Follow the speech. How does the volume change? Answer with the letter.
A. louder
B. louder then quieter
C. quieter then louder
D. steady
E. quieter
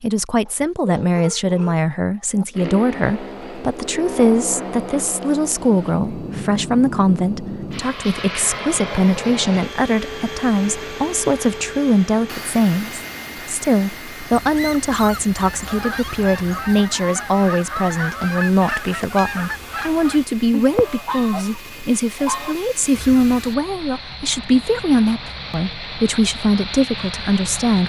D.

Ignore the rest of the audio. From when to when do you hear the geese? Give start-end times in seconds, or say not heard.
15.3-23.4.